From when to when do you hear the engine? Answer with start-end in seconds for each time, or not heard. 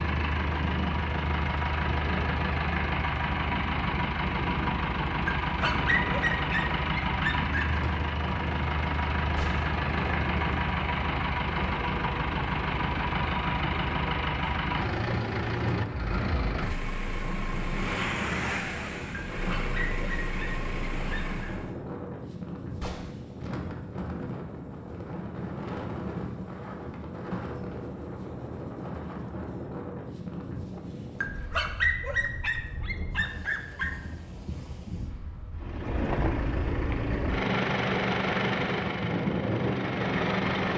0.0-21.8, 35.5-40.7.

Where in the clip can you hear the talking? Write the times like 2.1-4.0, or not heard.
not heard.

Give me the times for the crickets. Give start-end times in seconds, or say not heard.
not heard.